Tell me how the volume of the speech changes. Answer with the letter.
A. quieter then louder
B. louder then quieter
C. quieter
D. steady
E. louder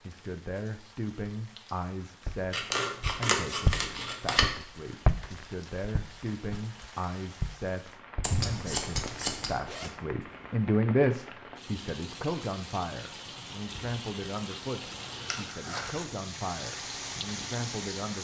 B.